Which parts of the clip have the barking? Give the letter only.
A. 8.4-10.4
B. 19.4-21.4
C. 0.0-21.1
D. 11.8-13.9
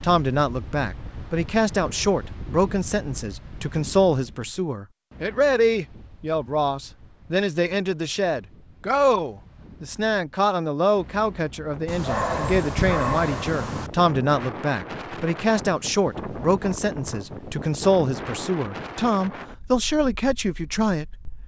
D.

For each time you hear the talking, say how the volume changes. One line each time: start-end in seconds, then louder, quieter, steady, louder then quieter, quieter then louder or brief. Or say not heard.
0.0-21.1 steady.